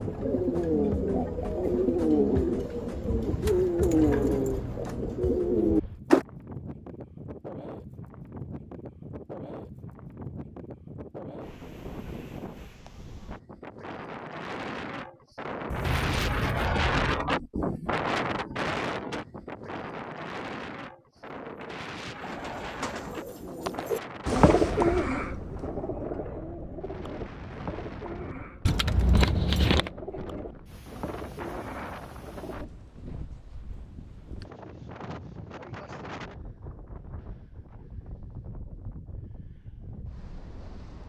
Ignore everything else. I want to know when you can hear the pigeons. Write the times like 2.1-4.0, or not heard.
0.0-6.2, 21.1-32.7.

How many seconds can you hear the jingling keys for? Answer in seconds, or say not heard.
4 s.